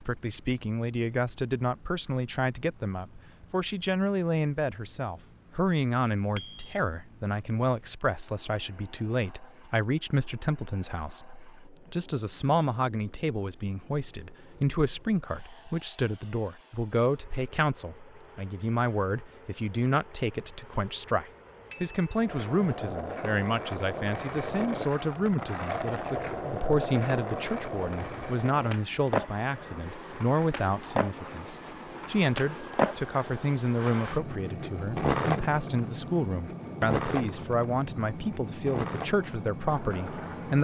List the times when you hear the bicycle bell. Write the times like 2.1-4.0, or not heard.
6.3-6.8, 21.7-22.2.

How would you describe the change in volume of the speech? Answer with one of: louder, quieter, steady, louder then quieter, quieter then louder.
steady.